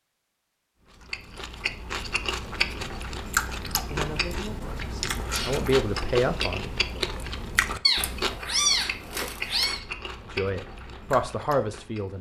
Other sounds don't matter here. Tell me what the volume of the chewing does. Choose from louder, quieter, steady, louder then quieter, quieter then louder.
quieter.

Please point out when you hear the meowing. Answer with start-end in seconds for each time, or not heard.
7.8-9.8.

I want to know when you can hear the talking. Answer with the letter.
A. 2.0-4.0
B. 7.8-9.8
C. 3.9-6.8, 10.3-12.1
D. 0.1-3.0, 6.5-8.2
C.